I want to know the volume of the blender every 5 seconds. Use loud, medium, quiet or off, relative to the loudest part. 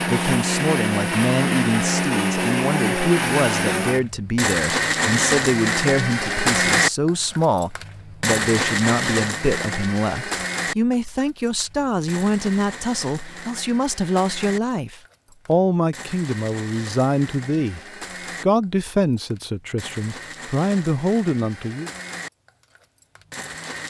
loud, loud, medium, quiet, quiet.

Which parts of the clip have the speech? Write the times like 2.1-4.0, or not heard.
0.1-17.8, 18.4-21.9.